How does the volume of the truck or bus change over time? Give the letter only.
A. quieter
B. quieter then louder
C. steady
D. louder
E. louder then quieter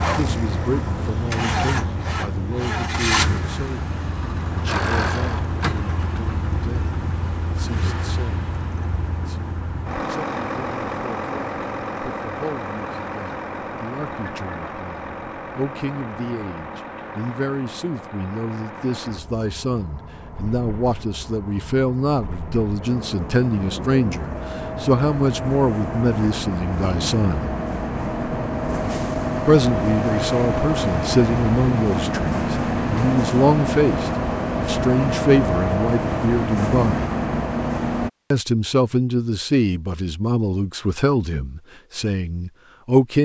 B.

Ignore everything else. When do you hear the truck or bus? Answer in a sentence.
You can hear the truck or bus from 0.0 to 38.1 s.